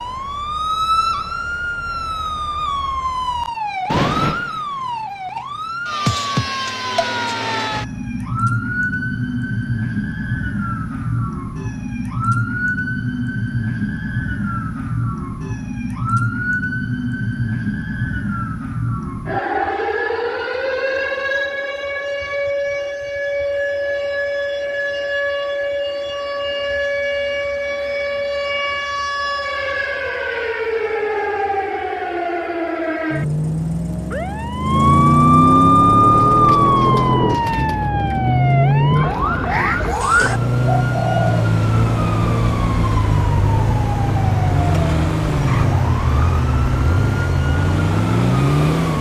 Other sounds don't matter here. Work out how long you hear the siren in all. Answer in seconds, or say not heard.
49 s.